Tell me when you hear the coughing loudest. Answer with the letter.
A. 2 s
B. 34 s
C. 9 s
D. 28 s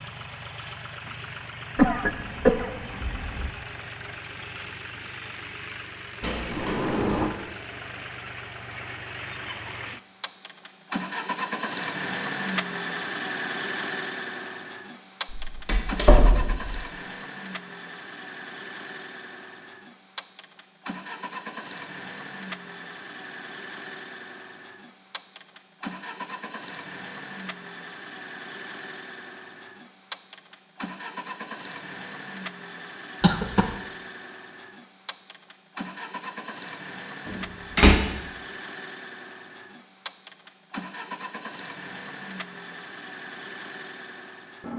A.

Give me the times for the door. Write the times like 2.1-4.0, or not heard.
6.2-7.3, 15.3-16.8, 37.2-38.0.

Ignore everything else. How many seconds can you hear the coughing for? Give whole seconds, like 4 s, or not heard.
2 s.